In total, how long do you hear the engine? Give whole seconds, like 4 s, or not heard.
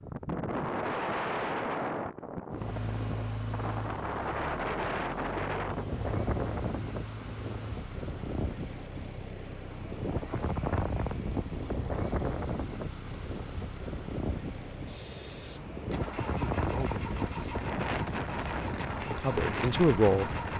18 s.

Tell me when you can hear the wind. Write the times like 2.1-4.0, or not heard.
0.0-20.5.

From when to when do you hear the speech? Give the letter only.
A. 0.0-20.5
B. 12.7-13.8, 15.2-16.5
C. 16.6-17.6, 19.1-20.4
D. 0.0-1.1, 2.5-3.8
C.